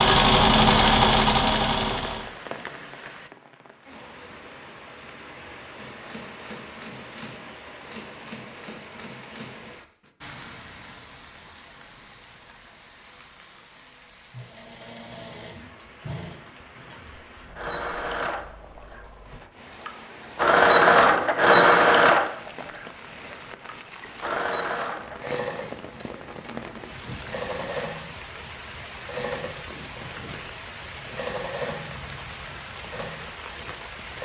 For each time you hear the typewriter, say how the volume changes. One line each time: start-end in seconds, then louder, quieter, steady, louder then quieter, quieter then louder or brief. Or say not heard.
3.6-10.1 louder.